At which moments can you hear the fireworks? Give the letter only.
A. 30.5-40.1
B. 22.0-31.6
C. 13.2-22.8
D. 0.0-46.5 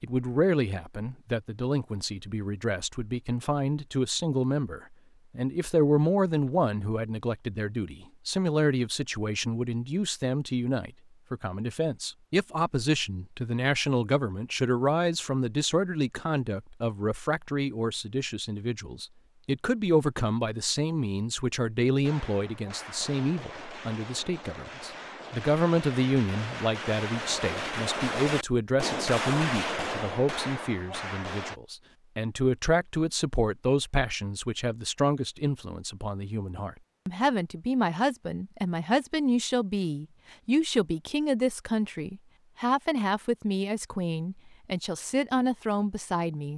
B.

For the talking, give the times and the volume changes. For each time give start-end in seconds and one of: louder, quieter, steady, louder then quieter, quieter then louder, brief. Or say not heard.
0.0-46.5 steady.